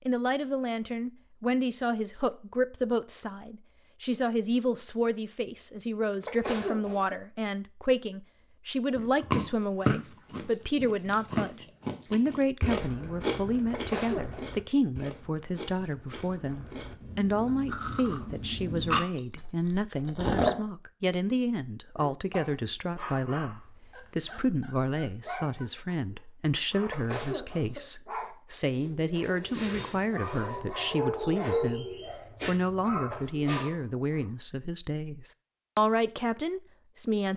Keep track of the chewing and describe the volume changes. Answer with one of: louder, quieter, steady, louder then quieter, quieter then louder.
quieter then louder.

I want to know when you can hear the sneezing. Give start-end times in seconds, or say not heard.
6.2-7.2, 13.7-14.4, 26.9-27.8.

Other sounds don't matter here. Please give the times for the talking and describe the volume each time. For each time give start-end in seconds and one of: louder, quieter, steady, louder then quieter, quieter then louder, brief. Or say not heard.
0.1-37.3 steady.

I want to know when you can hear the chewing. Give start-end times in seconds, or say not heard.
8.9-20.6.